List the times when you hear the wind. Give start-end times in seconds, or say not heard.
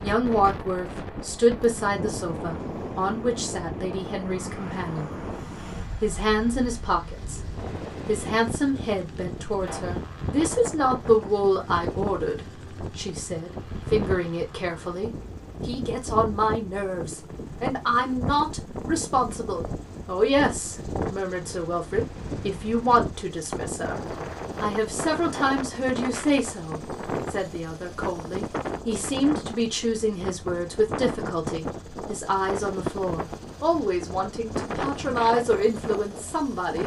0.0-36.8.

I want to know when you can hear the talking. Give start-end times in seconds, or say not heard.
0.0-5.2, 6.0-7.4, 8.1-24.0, 24.6-36.8.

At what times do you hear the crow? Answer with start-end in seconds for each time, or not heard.
not heard.